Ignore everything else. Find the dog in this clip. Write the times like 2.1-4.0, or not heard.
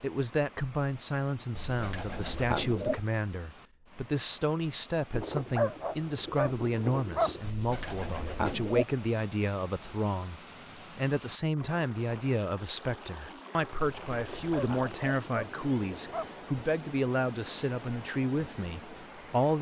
5.1-7.4, 14.1-16.4.